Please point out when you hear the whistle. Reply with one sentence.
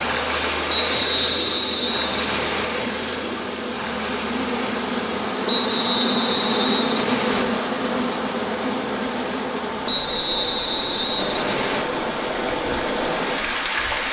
The whistle can be heard from 0.7 to 2.6 s, from 5.5 to 7.5 s and from 9.8 to 11.8 s.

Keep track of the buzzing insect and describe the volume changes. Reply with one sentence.
The loudness of the buzzing insect goes up, then down.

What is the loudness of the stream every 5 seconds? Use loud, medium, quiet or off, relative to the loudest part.
loud, medium, loud.